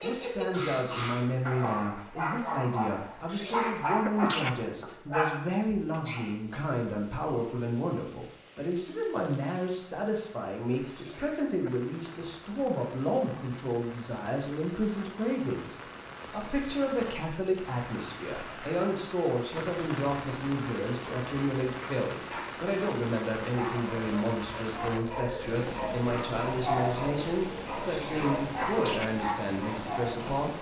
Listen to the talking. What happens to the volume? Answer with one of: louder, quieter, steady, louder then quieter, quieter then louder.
steady.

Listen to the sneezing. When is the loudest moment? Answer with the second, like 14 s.
4 s.